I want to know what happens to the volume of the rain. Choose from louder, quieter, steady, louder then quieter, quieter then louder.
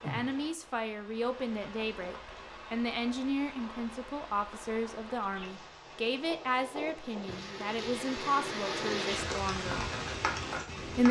louder.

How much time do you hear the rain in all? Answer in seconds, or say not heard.
11 s.